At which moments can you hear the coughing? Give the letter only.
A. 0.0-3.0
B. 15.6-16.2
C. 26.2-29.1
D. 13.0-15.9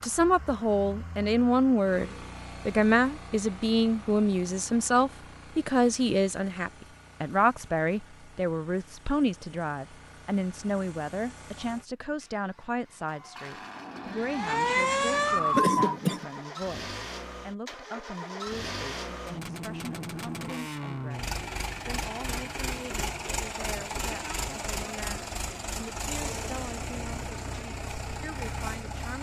B.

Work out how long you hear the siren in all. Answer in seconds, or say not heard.
3 s.